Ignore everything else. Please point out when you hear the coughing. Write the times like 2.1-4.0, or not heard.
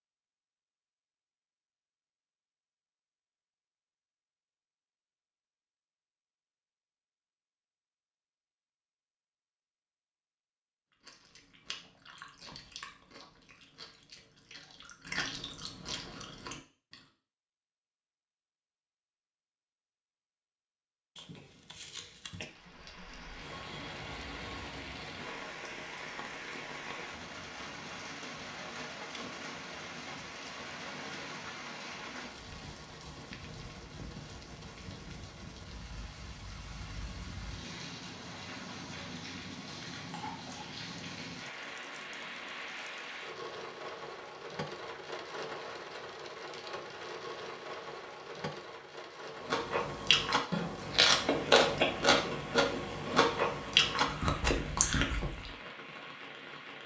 21.1-22.4, 40.0-40.8.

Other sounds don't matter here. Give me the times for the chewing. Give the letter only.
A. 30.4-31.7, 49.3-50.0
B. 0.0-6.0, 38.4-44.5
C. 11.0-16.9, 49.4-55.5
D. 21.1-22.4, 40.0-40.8
C.